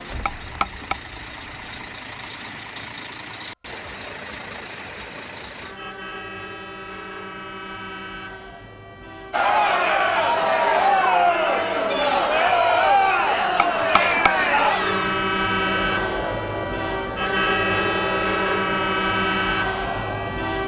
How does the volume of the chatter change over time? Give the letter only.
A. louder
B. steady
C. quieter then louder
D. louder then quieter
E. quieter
E.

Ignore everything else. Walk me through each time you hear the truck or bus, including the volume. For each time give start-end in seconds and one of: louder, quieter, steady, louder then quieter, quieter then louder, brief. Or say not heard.
0.0-20.6 louder.